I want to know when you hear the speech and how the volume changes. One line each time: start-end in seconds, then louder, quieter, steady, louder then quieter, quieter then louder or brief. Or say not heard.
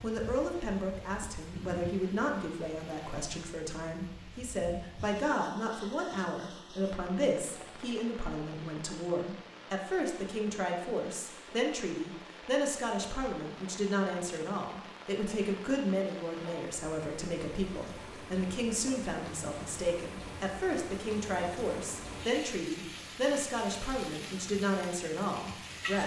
0.0-26.0 steady.